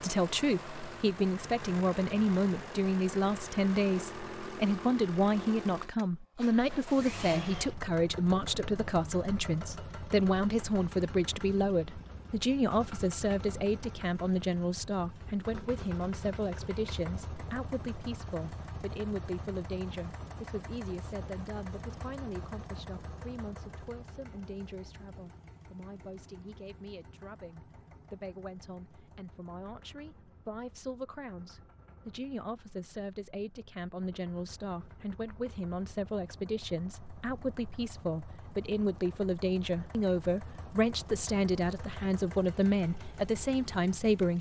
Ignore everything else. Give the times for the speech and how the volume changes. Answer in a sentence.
The speech can be heard from 0.0 to 44.3 s, getting quieter then louder.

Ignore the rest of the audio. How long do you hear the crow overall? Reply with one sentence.
You can't hear the crow here.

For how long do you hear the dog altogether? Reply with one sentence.
The dog can't be heard in this clip.